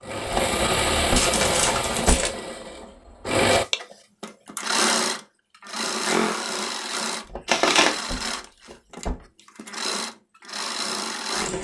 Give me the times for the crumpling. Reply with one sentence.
You can hear the crumpling from 1.1 to 2.3 s and from 7.5 to 8.1 s.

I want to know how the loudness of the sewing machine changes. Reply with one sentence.
The volume of the sewing machine goes down.